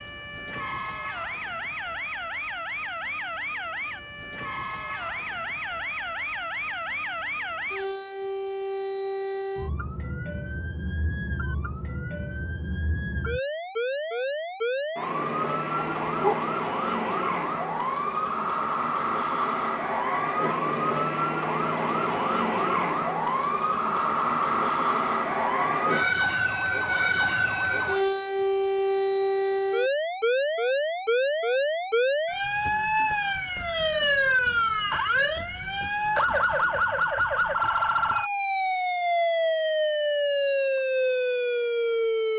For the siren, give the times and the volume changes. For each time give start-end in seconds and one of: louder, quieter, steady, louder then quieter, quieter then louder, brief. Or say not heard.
0.0-42.3 louder.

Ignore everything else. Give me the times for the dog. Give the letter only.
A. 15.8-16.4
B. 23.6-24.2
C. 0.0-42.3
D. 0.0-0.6
A.